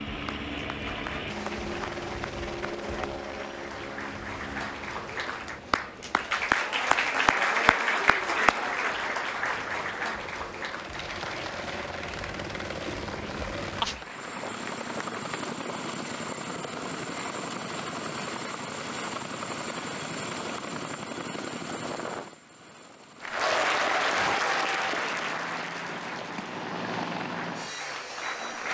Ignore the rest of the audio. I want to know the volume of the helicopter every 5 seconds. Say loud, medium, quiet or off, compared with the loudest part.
loud, quiet, loud, loud, loud, loud.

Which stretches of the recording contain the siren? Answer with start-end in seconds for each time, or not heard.
not heard.